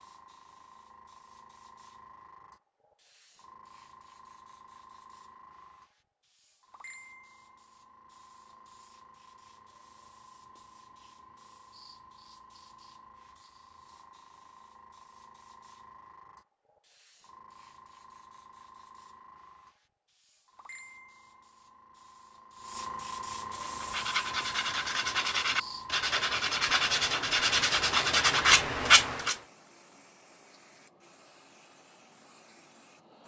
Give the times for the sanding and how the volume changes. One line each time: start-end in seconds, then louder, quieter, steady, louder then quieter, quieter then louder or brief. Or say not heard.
23.5-29.4 louder.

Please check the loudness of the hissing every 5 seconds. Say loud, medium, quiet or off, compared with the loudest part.
quiet, quiet, quiet, quiet, loud, loud, quiet.